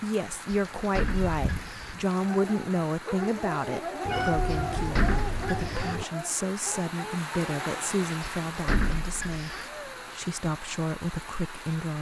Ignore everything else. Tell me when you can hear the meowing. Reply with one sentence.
The meowing can be heard from 1.0 to 2.0 s, from 4.0 to 6.0 s and from 9.4 to 10.2 s.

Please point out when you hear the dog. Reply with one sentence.
You can hear the dog from 2.1 to 7.8 s.